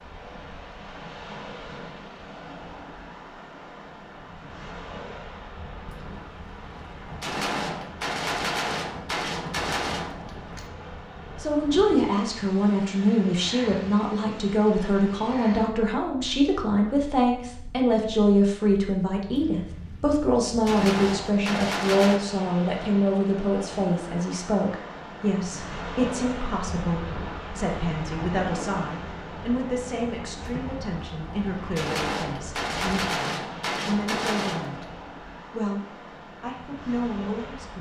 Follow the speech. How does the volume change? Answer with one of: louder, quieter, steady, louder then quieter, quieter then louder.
quieter.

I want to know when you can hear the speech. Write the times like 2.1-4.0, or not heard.
11.3-37.7.